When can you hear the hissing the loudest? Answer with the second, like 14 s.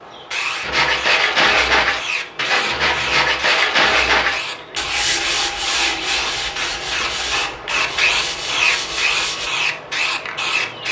8 s.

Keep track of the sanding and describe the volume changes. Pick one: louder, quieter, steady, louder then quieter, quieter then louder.
quieter.